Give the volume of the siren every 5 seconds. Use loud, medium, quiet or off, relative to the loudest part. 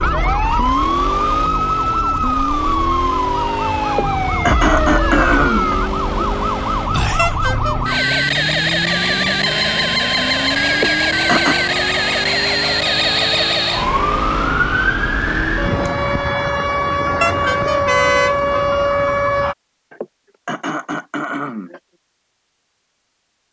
loud, loud, loud, loud, off.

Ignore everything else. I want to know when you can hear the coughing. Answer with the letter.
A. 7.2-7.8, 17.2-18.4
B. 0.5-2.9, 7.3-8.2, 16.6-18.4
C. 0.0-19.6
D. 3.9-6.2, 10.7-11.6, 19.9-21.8
D.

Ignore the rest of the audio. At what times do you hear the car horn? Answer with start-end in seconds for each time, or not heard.
7.2-7.8, 17.2-18.4.